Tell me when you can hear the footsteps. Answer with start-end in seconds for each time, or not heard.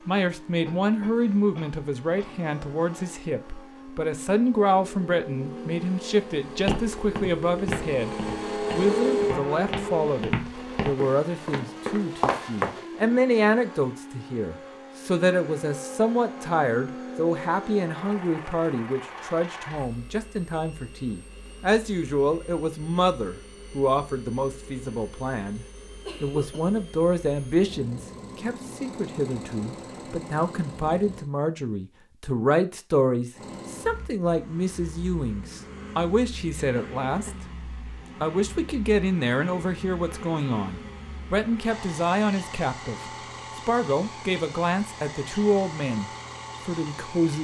6.5-12.8.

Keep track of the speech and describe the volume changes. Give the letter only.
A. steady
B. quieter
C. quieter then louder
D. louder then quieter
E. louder
A.